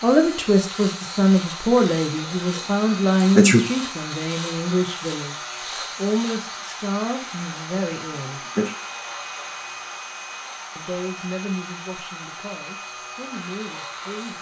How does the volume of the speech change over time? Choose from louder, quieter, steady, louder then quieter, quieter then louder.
quieter.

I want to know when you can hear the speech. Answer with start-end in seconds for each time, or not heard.
0.0-8.4, 10.8-14.3.